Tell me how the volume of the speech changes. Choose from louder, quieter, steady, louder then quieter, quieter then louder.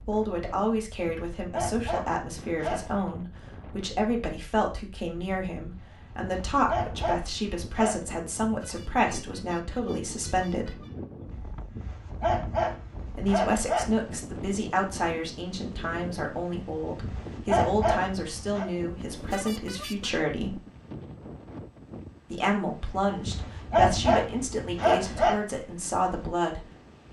steady.